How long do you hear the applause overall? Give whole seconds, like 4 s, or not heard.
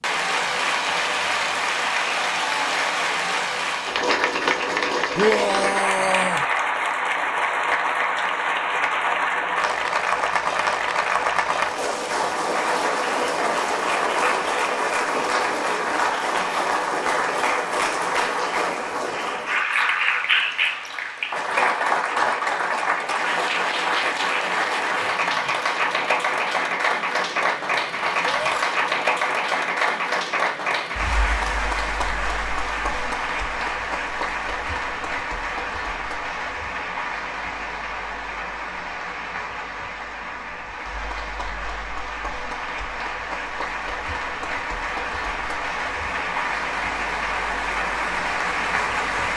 49 s.